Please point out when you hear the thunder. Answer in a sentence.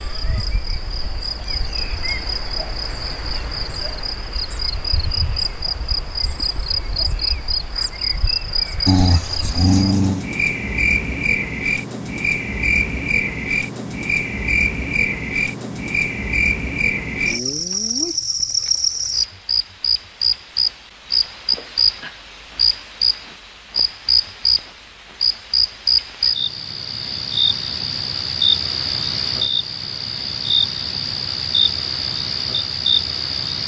The thunder can't be heard in this clip.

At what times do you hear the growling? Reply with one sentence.
The growling can be heard from 8.8 to 10.2 s.